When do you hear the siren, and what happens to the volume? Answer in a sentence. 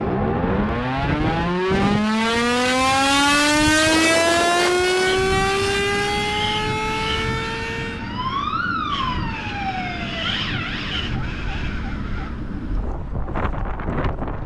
The siren can be heard from 0.0 to 14.4 s, getting quieter.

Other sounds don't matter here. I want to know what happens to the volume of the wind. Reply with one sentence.
The loudness of the wind stays about the same.